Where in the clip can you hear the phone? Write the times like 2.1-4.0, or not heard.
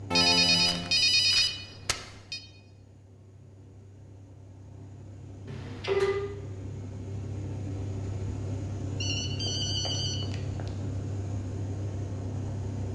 0.1-2.4, 5.5-6.2, 9.0-10.7.